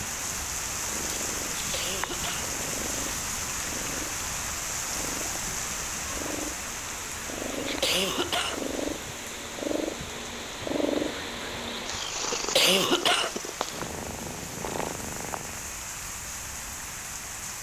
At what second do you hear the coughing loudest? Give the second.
13 s.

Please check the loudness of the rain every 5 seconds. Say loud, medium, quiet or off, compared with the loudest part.
loud, loud, medium, medium.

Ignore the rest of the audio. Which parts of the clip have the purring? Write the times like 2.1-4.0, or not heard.
0.0-15.8.